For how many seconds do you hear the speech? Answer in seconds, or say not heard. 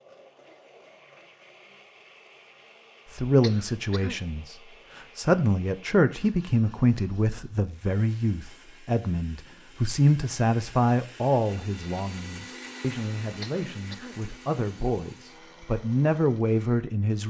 14 s.